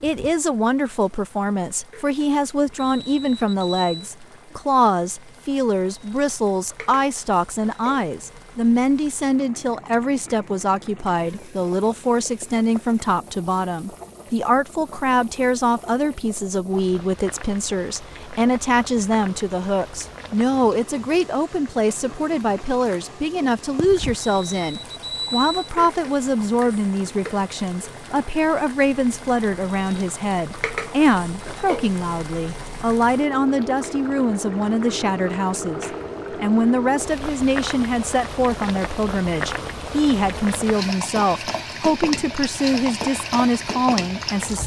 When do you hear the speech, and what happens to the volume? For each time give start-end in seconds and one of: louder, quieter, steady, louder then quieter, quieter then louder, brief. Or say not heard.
0.0-44.6 steady.